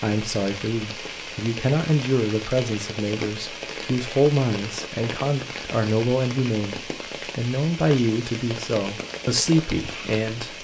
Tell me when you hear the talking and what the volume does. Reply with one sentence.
The talking can be heard from 0.0 to 10.5 s, at a steady volume.